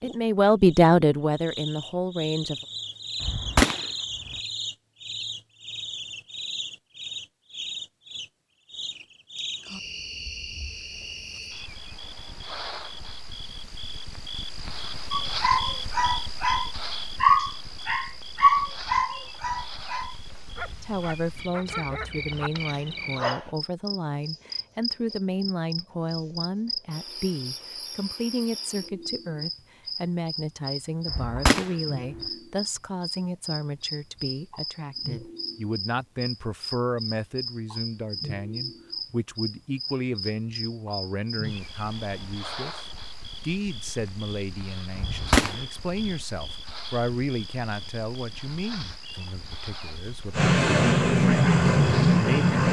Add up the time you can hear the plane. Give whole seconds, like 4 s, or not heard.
2 s.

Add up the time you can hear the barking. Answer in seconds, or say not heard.
8 s.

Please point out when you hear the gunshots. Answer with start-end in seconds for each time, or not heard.
3.2-4.3, 31.1-32.2, 45.0-46.1.